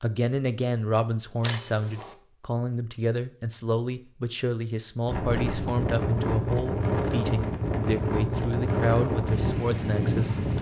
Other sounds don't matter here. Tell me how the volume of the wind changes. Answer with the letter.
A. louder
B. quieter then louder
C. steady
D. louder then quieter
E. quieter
C.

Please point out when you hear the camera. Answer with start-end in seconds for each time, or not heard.
1.4-2.1.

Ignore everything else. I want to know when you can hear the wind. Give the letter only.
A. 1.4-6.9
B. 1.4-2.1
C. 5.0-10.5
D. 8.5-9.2
C.